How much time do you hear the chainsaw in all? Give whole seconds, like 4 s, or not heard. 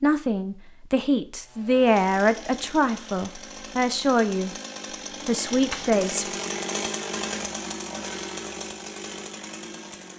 9 s.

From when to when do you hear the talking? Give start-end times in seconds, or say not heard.
0.0-4.5, 5.2-6.2.